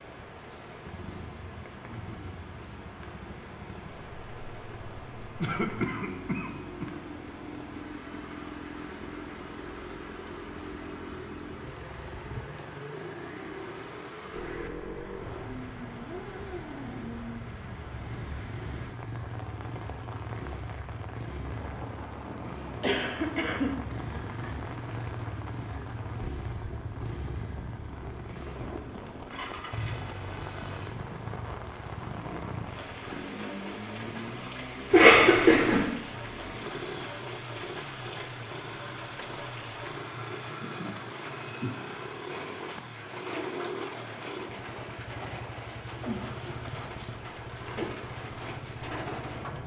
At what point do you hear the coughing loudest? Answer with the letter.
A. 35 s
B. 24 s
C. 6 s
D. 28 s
A.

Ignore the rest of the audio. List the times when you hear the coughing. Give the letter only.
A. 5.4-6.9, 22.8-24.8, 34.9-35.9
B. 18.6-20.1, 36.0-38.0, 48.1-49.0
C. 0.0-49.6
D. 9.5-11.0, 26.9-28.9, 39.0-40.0
A.